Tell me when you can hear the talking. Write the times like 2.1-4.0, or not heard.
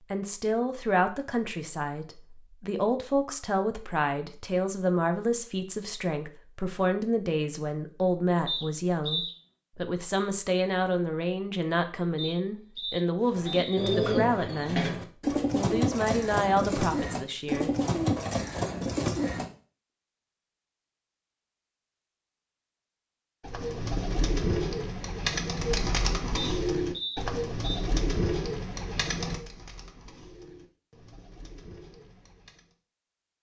0.1-14.9, 15.5-17.7.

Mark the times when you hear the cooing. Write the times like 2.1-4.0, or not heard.
13.3-19.4, 23.4-32.8.